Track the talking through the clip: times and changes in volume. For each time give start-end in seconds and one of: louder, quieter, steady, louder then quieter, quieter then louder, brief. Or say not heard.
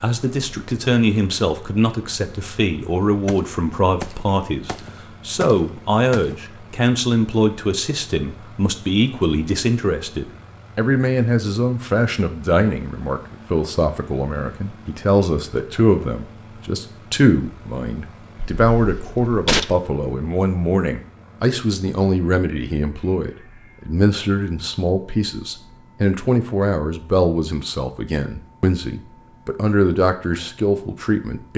0.0-31.5 steady.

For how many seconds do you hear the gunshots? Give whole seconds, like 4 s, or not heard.
4 s.